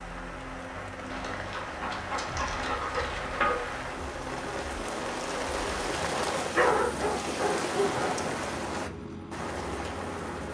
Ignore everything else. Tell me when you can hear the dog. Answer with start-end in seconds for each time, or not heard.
1.1-3.6, 6.5-8.3.